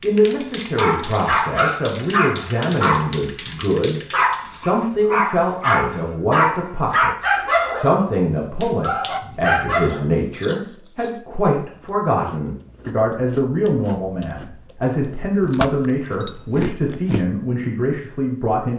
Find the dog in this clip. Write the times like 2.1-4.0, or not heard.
0.0-10.1.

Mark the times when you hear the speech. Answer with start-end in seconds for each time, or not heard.
0.0-18.7.